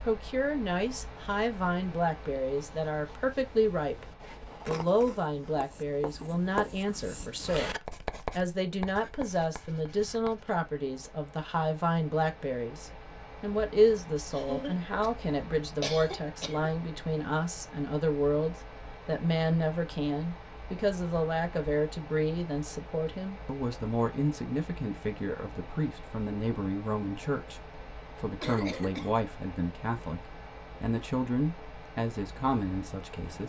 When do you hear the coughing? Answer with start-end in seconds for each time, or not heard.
4.7-5.5, 14.3-16.7, 28.4-29.1.